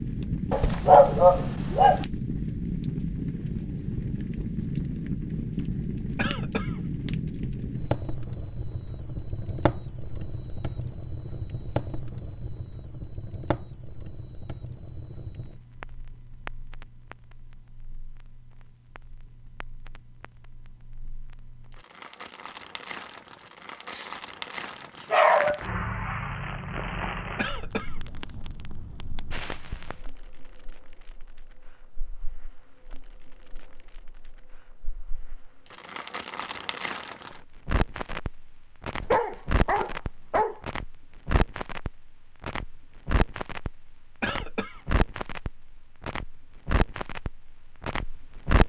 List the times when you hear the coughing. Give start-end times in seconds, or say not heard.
6.2-6.8, 27.4-28.0, 44.2-44.8.